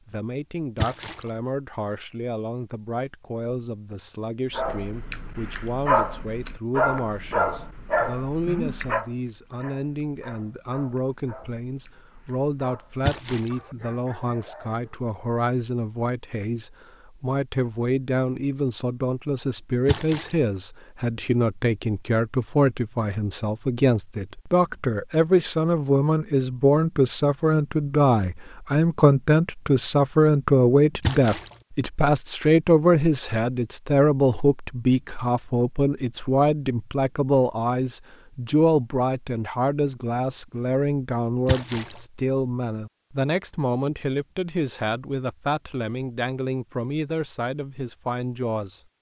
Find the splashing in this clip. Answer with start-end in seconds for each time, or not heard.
0.8-1.2, 13.1-13.5, 19.9-20.4, 31.0-31.5, 41.5-42.0.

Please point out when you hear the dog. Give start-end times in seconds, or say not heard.
4.5-15.0.